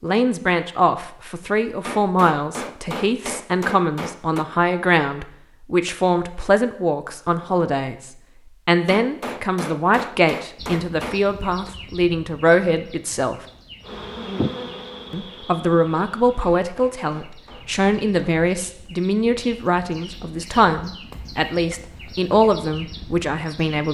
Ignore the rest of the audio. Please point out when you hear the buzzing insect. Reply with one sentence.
The buzzing insect can be heard from 13.8 to 16.4 s.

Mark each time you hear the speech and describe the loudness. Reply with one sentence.
You can hear the speech from 0.0 to 13.4 s, at a steady volume; and from 15.1 to 23.9 s, at a steady volume.